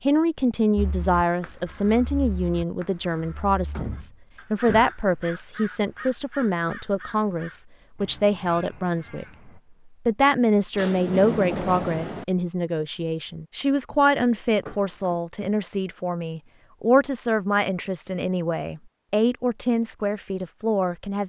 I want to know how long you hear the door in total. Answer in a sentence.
The door can be heard for 3 seconds in total.